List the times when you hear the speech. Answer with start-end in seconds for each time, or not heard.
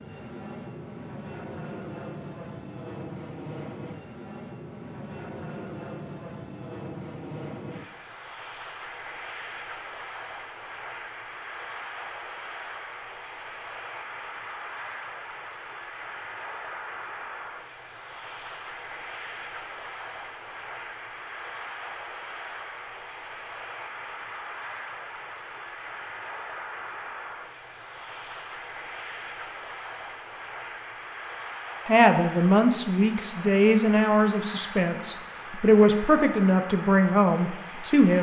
31.9-38.1.